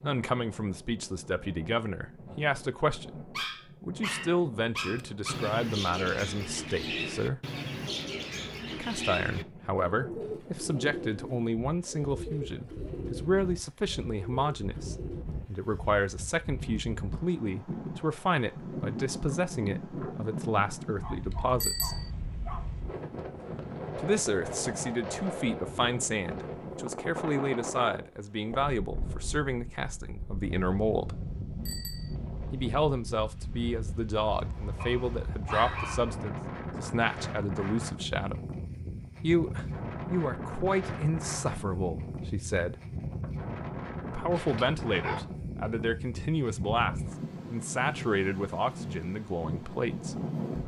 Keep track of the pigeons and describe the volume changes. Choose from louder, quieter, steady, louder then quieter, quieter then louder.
quieter.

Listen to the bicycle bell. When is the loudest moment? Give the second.
22 s.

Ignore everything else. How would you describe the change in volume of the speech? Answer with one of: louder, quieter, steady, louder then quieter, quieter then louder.
steady.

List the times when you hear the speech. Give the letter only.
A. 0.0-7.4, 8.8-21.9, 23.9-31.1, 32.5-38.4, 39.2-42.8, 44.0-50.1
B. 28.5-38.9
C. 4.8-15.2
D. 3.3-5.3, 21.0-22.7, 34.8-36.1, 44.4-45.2
A.